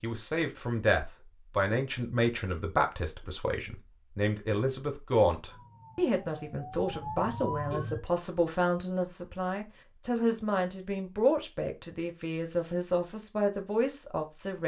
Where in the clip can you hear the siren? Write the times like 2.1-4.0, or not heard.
5.5-8.0.